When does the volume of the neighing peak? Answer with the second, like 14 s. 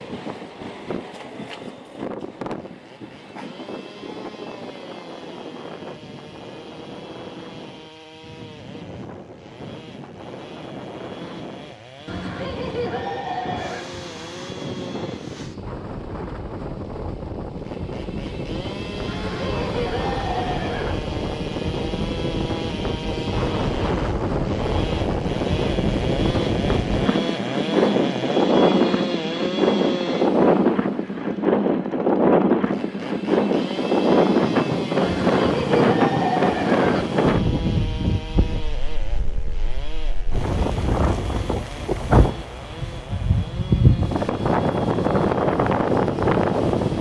36 s.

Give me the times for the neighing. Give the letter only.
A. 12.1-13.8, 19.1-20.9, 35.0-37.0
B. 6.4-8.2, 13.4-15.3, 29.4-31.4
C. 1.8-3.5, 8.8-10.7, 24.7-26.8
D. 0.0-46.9
A.